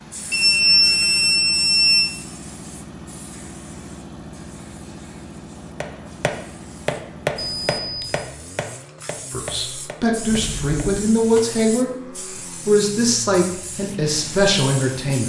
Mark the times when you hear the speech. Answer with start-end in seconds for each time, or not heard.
9.3-15.2.